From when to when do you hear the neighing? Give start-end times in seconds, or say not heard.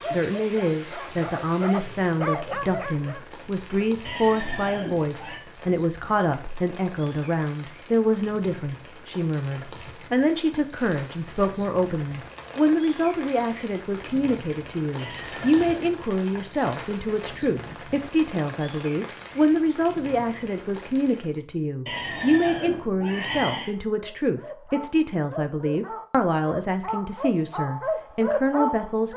4.0-5.4, 14.9-16.0, 21.9-23.7.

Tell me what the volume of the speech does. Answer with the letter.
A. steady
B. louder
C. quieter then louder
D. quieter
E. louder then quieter
A.